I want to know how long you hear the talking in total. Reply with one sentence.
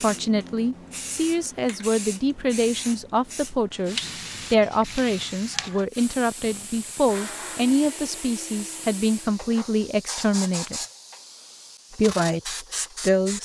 You can hear the talking for 12 seconds altogether.